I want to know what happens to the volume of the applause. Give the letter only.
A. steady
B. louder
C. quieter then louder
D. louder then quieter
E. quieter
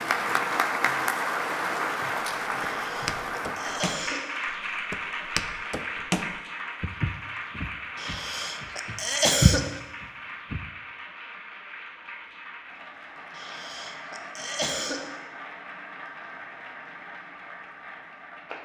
E.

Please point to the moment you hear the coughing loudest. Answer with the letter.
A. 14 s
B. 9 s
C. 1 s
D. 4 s
B.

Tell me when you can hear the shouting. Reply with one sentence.
The shouting can't be heard in this clip.